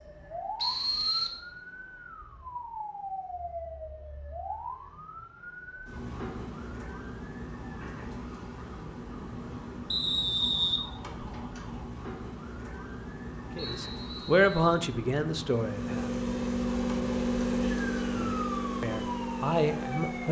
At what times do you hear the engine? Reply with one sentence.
The engine can be heard from 15.4 to 20.2 s.